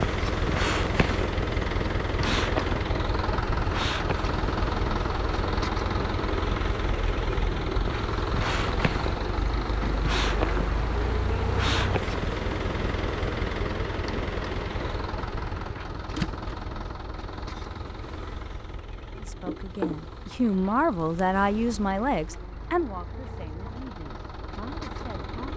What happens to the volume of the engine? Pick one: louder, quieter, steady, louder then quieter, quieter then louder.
quieter.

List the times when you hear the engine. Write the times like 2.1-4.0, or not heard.
0.0-25.5.